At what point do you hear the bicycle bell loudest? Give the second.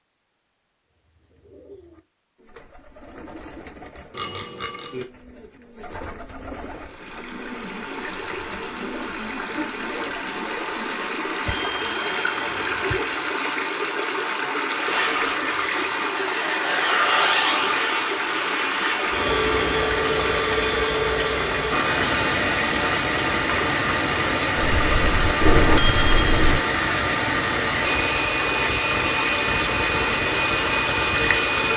26 s.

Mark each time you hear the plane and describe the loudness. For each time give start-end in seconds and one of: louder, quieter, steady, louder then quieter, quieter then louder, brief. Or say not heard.
14.8-31.7 steady.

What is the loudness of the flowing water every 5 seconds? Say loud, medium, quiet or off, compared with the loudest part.
off, medium, loud, loud, loud, loud, loud.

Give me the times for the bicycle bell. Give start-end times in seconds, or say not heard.
4.2-5.0, 11.4-13.1, 24.6-26.6.